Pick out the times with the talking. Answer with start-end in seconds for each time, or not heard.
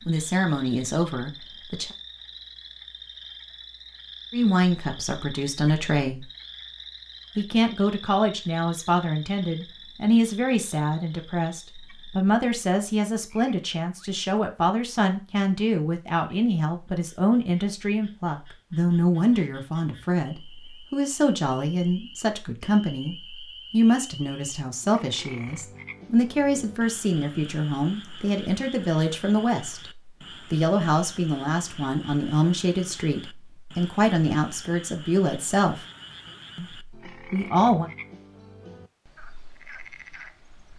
0.1-1.9, 4.3-6.2, 7.3-29.9, 30.5-35.8, 36.5-37.9.